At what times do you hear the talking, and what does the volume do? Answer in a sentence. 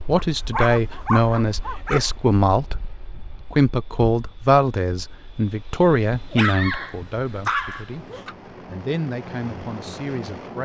You can hear the talking from 0.1 to 10.5 s, getting quieter.